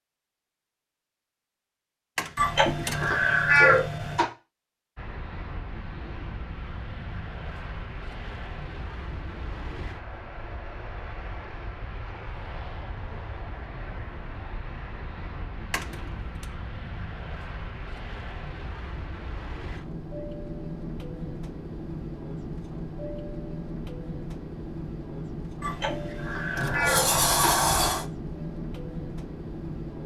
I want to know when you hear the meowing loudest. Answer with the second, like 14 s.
4 s.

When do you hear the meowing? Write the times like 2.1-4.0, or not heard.
2.4-4.2, 25.6-27.6.